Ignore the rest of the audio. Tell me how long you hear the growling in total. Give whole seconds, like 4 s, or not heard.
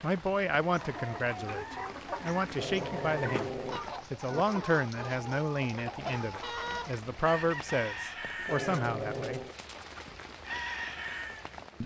3 s.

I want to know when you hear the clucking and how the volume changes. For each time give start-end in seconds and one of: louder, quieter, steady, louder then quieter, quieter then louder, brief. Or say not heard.
0.6-11.4 steady.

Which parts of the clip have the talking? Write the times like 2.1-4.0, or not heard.
0.0-3.5, 4.1-9.4.